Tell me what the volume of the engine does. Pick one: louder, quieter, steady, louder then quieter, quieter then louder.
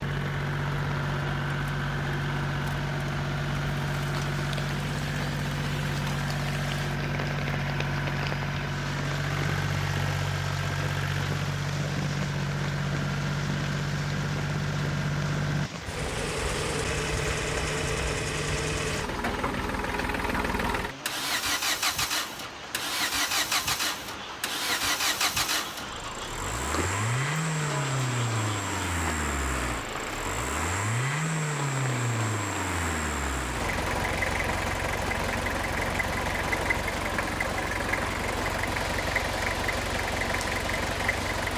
steady.